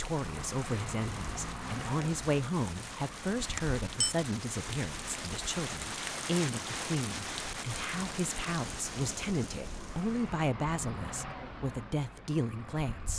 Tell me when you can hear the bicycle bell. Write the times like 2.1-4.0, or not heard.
3.5-4.2.